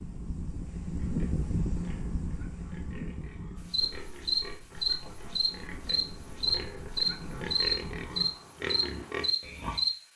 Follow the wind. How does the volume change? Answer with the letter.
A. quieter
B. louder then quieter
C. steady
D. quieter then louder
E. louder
D.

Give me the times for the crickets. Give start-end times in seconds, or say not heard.
3.7-9.9.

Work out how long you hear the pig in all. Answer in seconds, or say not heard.
9 s.